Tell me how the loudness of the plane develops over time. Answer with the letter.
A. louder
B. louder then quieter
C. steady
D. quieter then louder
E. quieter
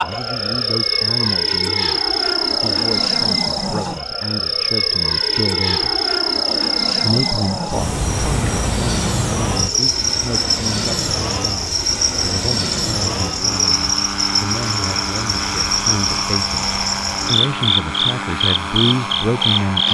C.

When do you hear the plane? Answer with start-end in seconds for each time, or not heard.
0.0-19.8.